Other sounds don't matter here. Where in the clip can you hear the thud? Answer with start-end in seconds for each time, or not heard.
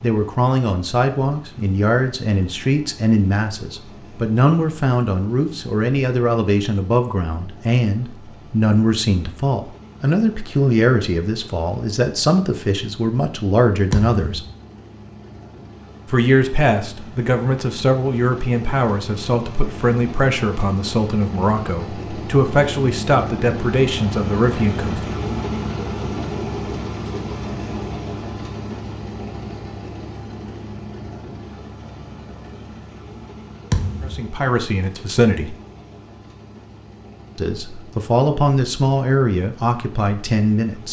13.9-14.6, 33.7-34.2.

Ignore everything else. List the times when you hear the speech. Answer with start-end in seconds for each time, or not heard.
0.0-14.4, 16.1-25.1, 34.0-35.5, 37.4-40.8.